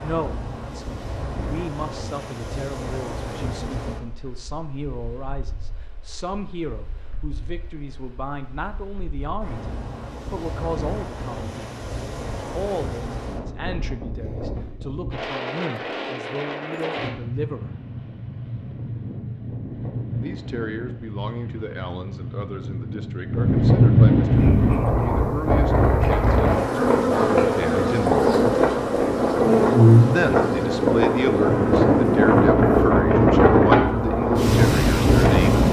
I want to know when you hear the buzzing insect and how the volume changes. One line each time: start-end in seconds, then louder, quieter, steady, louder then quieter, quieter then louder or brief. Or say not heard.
24.3-35.6 louder then quieter.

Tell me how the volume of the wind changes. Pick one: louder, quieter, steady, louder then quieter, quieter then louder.
louder.